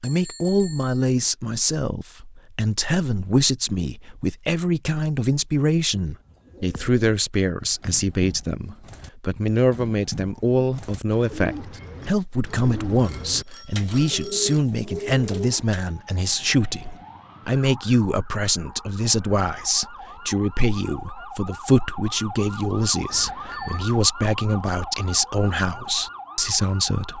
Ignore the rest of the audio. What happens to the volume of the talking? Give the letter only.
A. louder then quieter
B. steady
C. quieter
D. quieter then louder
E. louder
B.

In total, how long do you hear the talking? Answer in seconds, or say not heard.
27 s.